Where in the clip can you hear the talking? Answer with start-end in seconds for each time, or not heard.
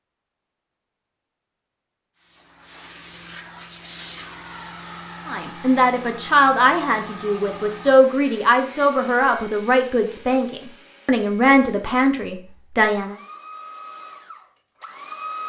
5.2-13.2.